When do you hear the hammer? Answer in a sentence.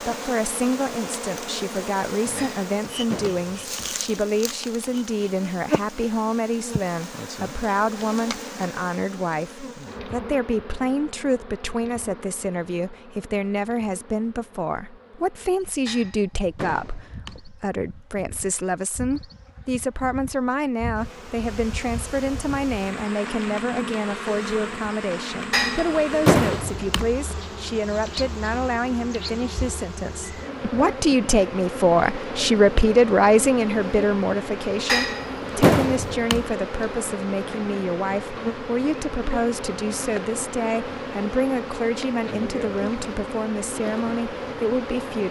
The hammer can be heard from 2.4 to 4.0 s, from 15.8 to 17.4 s, from 25.5 to 27.1 s and from 34.9 to 36.5 s.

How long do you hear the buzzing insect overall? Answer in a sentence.
You can hear the buzzing insect for 45 seconds altogether.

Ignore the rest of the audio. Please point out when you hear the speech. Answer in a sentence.
The speech can be heard from 0.0 to 45.2 s.